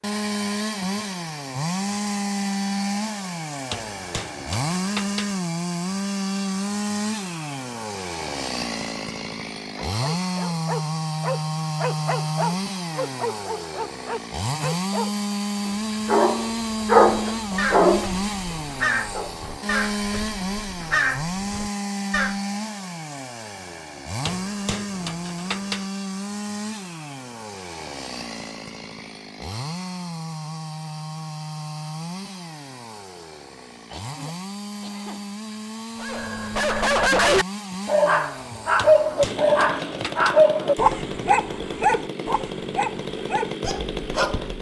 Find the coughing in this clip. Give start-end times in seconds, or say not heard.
33.9-35.3.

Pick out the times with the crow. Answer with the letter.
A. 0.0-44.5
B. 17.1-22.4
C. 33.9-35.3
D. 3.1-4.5
B.